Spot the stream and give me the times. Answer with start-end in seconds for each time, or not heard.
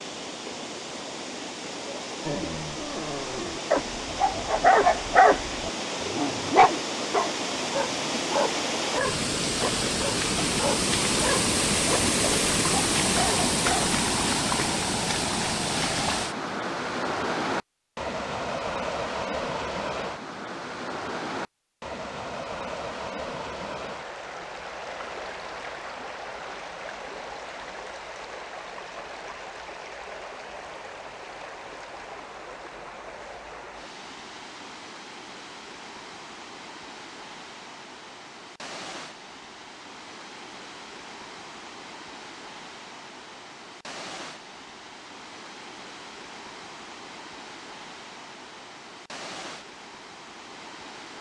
0.0-51.1.